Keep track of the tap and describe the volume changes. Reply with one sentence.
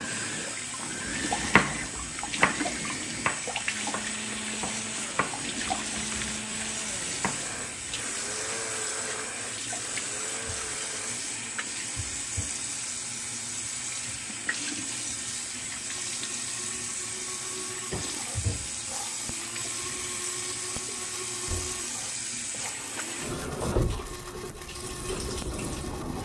The volume of the tap stays about the same.